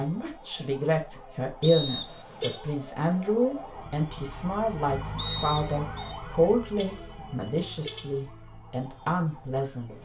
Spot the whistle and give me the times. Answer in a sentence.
You can hear the whistle from 1.6 to 2.6 s and from 5.2 to 6.2 s.